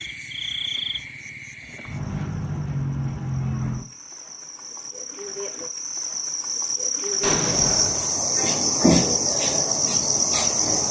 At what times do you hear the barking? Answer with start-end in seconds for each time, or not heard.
not heard.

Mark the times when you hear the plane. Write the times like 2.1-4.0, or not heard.
not heard.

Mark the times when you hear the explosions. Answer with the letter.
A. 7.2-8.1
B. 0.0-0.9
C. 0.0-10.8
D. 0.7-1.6
A.